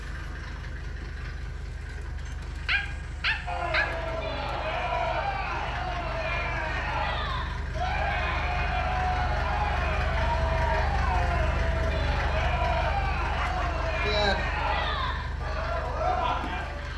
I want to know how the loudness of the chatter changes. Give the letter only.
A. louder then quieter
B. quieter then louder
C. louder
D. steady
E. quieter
D.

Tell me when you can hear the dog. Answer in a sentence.
You can hear the dog from 2.2 to 3.9 s and from 13.3 to 14.3 s.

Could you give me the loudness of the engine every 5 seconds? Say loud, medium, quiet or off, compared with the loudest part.
medium, loud, loud, medium.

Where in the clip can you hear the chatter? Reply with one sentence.
You can hear the chatter from 3.5 to 16.9 s.